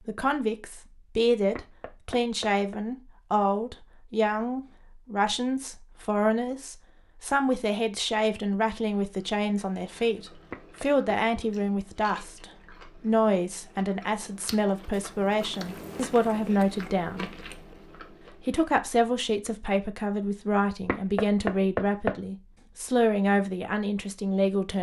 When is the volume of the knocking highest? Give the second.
22 s.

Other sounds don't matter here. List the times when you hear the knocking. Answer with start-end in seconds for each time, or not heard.
1.6-2.8, 10.5-11.2, 20.9-22.2.